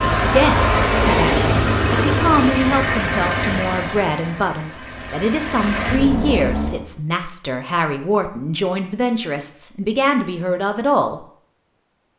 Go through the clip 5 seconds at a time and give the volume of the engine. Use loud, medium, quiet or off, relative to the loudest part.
loud, medium, off.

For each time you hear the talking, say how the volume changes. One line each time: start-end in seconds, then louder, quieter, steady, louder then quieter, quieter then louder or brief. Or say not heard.
0.1-11.2 steady.